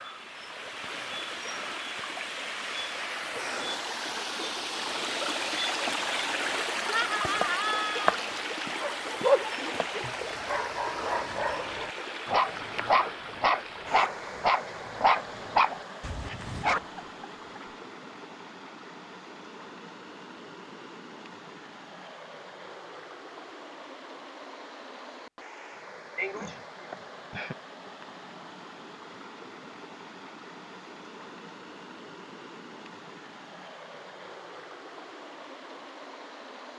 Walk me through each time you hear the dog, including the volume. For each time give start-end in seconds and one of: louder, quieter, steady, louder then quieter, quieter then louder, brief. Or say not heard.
8.8-16.8 quieter then louder.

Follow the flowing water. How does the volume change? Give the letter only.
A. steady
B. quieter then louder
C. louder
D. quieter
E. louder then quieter
D.